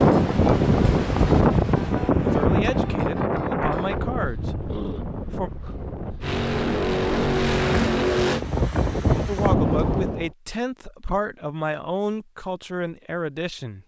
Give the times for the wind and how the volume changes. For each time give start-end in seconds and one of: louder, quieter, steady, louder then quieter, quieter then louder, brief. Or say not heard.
0.0-10.3 quieter then louder.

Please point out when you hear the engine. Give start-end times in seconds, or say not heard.
6.2-8.4.